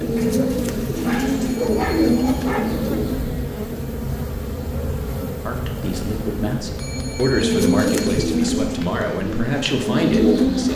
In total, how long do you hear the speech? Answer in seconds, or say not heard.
5 s.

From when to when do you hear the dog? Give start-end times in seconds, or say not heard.
0.1-2.6.